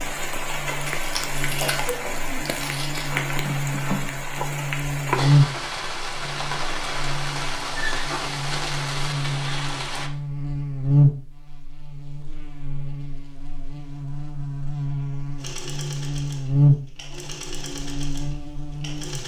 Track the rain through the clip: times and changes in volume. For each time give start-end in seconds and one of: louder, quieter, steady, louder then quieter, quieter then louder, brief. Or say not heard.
0.0-10.1 steady.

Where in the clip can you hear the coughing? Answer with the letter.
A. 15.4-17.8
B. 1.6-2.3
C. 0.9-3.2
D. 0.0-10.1
B.